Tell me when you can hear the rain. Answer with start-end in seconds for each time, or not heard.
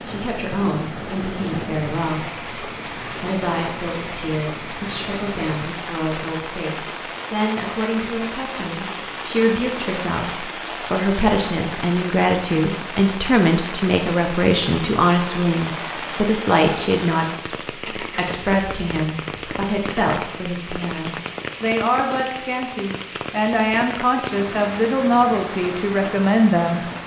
0.0-27.0.